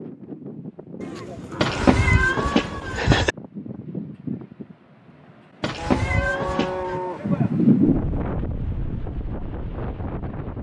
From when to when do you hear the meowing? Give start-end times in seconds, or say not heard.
1.6-3.4, 5.6-7.0.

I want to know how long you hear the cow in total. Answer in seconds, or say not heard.
4 s.